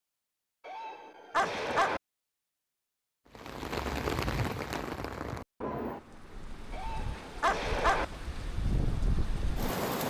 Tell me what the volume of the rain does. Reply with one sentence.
The loudness of the rain goes down, then up.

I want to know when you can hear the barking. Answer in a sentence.
The barking can be heard from 0.7 to 2.0 s and from 6.7 to 8.1 s.